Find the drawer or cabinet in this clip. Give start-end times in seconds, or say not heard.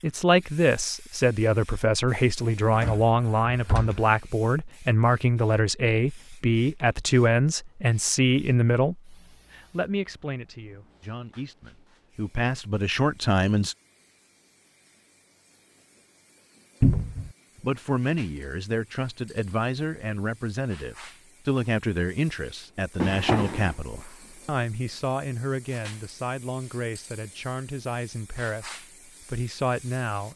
2.7-4.0, 16.8-17.3, 23.0-23.8.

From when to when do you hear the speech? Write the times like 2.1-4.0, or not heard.
0.0-13.8, 17.6-30.3.